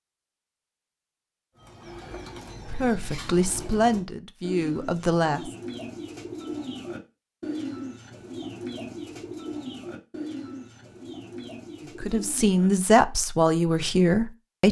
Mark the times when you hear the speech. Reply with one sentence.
You can hear the speech from 2.6 to 5.5 s and from 12.0 to 14.6 s.